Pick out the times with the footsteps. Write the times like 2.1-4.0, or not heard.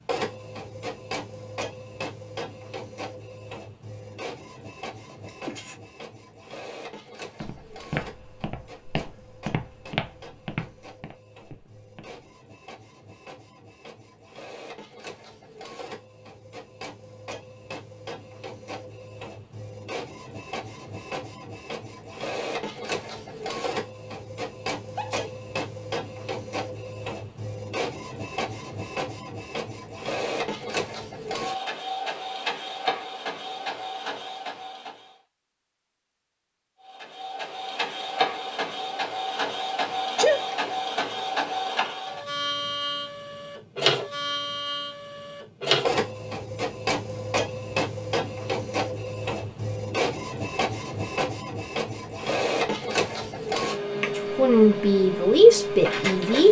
7.4-12.2.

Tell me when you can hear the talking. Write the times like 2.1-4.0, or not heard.
54.0-56.4.